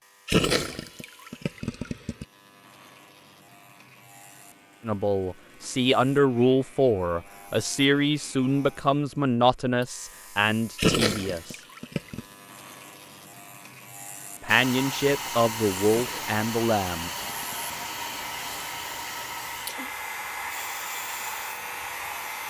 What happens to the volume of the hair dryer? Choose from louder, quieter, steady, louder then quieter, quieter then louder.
steady.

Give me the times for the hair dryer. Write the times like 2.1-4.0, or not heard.
14.4-22.4.